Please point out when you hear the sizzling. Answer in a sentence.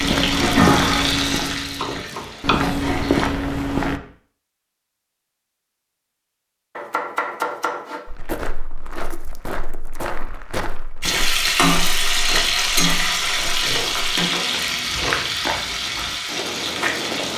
You can hear the sizzling from 0.0 to 3.3 s and from 11.0 to 17.3 s.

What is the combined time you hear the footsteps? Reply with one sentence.
The footsteps can be heard for 13 seconds in total.